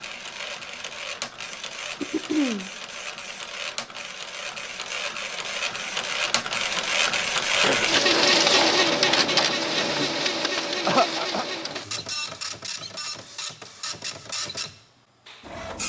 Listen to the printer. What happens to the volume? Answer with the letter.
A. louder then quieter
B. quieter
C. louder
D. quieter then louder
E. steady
A.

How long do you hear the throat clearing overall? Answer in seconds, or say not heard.
2 s.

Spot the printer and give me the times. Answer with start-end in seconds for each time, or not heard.
0.0-15.8.